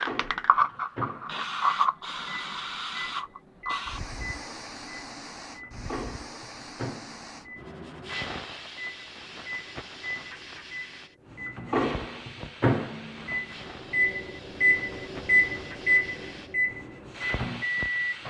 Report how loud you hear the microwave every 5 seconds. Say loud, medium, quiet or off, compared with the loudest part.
quiet, quiet, loud, loud.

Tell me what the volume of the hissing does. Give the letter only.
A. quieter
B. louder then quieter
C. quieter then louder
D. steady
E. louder
A.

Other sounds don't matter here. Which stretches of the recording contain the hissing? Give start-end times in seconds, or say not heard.
0.0-18.2.